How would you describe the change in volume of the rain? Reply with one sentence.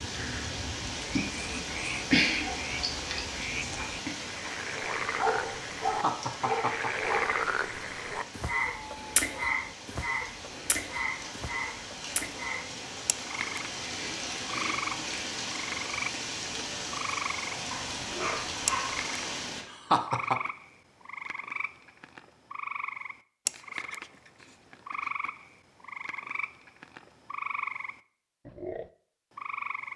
The loudness of the rain goes down, then up.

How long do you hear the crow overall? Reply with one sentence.
You can't hear the crow here.